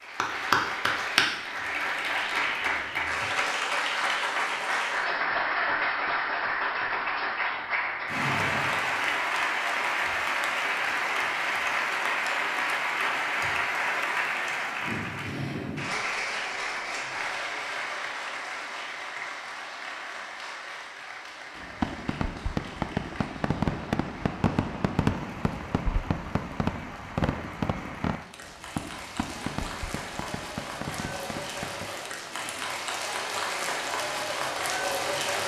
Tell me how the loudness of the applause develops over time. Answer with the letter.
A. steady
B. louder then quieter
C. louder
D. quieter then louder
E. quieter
D.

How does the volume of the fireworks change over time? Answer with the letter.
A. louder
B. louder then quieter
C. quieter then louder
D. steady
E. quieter
E.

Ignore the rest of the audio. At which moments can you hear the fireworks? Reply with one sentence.
You can hear the fireworks from 21.6 to 31.9 s.